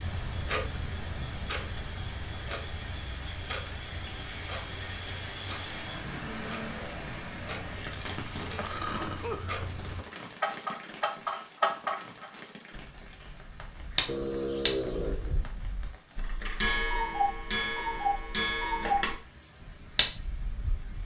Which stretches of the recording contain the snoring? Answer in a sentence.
The snoring can be heard from 14.1 to 15.5 s.